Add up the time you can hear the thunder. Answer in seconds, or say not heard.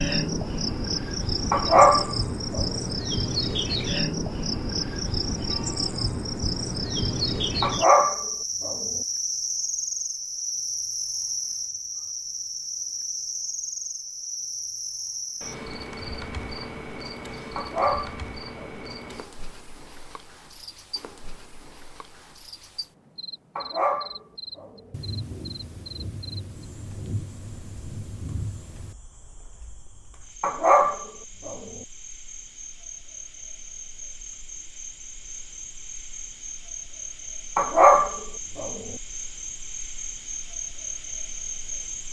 4 s.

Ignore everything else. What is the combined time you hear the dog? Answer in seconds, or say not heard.
8 s.